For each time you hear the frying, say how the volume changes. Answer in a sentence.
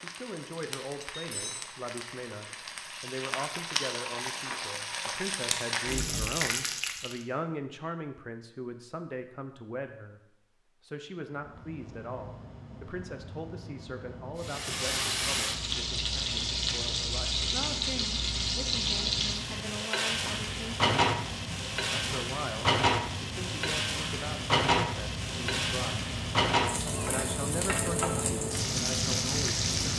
You can hear the frying from 0.0 to 7.2 s, getting louder; and from 14.4 to 29.9 s, at a steady volume.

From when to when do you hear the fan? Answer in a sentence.
You can hear the fan from 11.3 to 29.9 s.